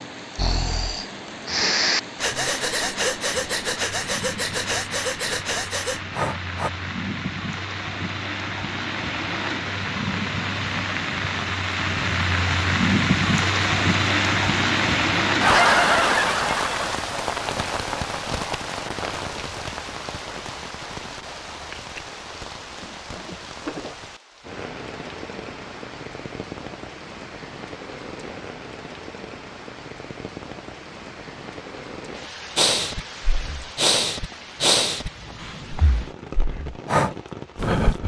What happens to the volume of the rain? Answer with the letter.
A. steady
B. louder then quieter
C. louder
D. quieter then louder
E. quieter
B.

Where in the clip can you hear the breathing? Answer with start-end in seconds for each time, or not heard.
0.3-6.7, 32.5-38.0.